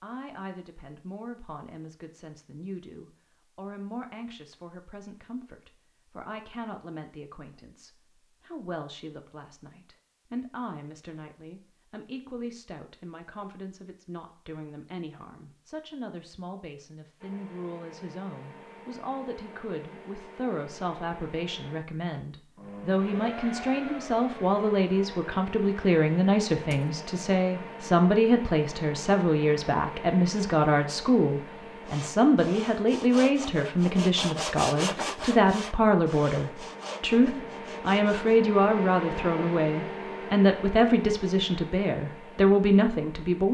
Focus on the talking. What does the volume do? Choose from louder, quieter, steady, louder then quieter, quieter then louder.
louder.